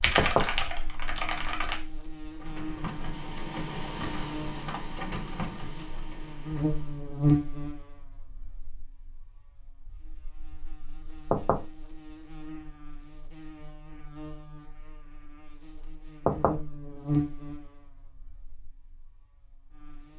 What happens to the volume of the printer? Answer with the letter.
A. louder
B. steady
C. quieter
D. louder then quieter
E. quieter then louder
C.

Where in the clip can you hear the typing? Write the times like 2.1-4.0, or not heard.
0.0-1.8.